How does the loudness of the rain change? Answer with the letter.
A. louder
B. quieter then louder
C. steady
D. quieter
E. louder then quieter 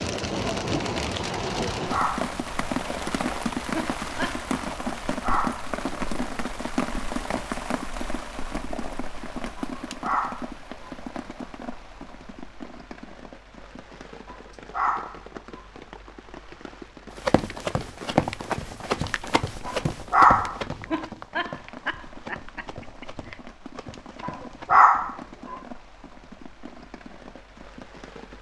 D.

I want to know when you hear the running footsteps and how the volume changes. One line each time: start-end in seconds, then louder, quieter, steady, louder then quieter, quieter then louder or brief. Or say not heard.
17.1-24.9 quieter.